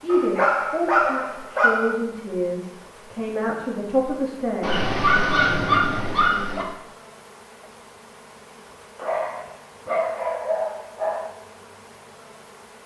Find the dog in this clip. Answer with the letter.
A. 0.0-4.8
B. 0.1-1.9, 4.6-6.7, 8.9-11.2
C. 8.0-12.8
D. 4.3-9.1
B.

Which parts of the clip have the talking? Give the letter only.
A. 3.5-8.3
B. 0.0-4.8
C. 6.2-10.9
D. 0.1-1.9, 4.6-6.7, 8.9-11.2
B.